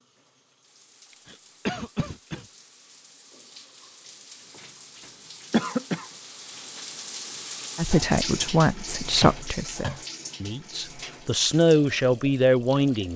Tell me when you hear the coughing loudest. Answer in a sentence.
The volume of the coughing peaks at 6 seconds.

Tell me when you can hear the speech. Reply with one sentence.
The speech can be heard from 7.8 to 13.1 s.